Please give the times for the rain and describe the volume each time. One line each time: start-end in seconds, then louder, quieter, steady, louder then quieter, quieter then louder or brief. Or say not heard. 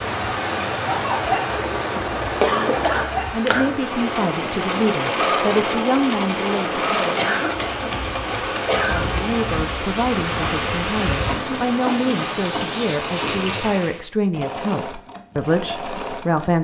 0.0-14.0 quieter then louder.